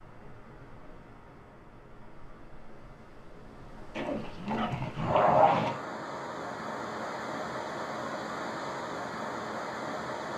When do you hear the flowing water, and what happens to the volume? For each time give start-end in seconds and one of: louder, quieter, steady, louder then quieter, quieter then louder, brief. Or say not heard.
0.0-10.3 louder.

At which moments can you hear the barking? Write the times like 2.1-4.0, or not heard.
4.0-5.8.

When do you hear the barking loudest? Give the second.
5 s.